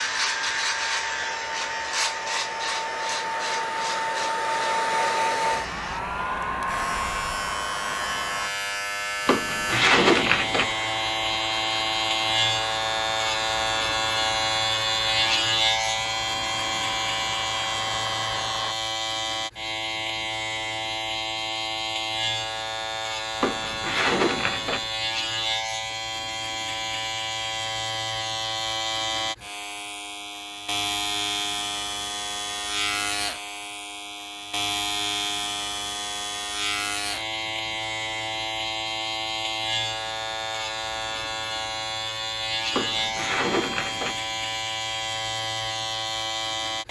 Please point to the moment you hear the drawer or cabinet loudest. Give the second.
10 s.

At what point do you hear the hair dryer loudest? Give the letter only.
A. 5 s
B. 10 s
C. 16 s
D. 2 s
A.